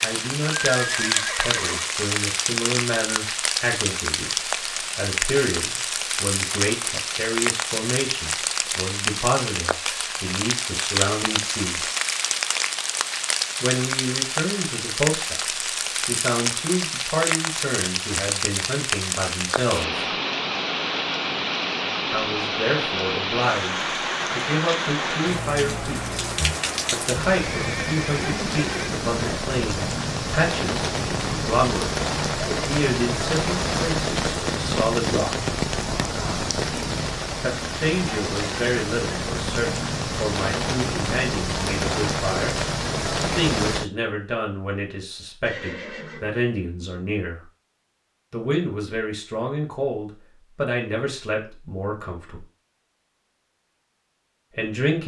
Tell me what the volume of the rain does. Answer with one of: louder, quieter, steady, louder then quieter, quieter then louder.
steady.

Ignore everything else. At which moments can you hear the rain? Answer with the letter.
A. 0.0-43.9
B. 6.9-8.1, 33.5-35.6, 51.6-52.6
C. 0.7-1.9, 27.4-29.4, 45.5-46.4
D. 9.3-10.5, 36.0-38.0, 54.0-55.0
A.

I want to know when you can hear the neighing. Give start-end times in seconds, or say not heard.
0.7-1.9, 27.4-29.4, 45.5-46.4.